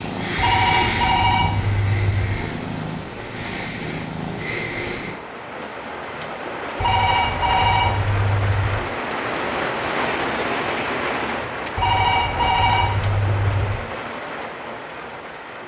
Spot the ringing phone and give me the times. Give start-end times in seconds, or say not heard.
0.3-2.4, 6.8-8.8, 11.8-13.8.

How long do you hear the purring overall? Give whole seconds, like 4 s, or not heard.
5 s.